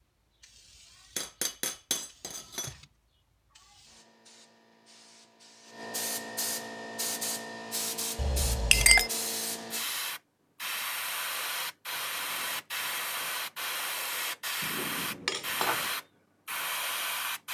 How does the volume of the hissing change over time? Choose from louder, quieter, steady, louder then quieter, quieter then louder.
louder.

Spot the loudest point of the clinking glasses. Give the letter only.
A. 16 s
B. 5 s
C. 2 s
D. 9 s
D.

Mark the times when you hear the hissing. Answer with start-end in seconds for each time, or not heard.
0.0-17.4.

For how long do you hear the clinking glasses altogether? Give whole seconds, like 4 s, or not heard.
4 s.